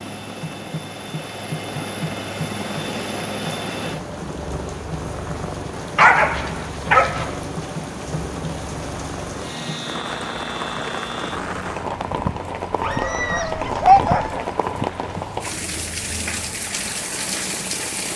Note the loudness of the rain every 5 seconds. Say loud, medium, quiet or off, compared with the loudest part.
medium, medium, loud, loud.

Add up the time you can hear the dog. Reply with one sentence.
The dog can be heard for 3 seconds in total.